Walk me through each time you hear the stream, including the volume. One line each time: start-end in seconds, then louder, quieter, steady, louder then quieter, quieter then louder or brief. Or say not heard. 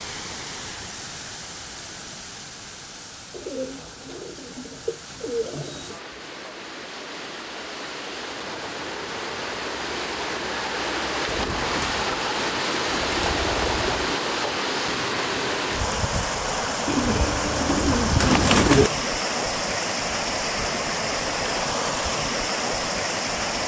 0.0-23.6 louder.